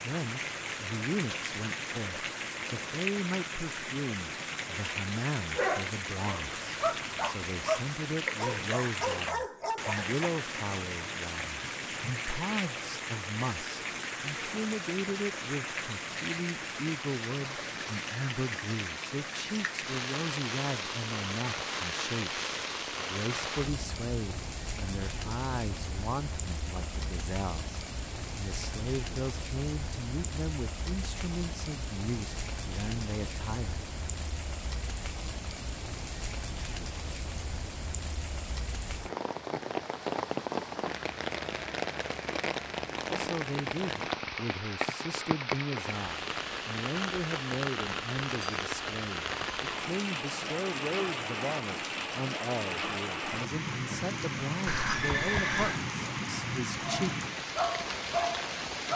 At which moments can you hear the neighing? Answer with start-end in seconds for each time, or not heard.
54.6-55.9.